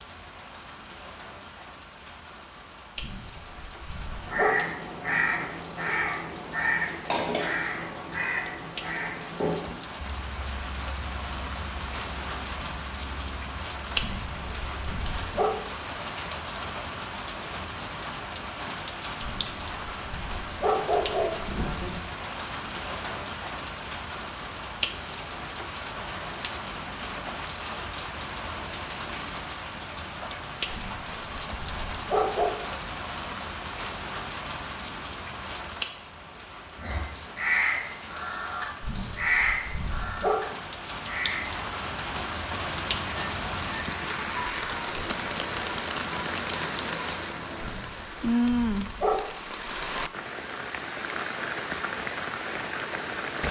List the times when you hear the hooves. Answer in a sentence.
The hooves can't be heard in this clip.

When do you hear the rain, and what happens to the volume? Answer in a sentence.
You can hear the rain from 0.0 to 53.4 s, getting louder.